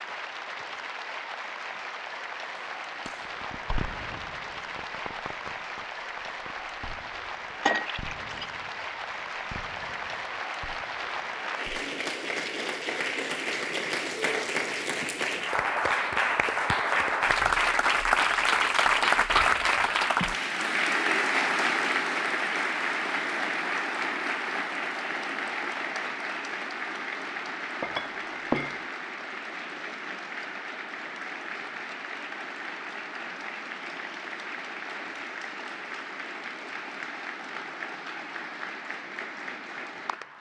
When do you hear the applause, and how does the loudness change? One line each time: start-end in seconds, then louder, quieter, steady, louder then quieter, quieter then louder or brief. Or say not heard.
0.0-40.3 louder then quieter.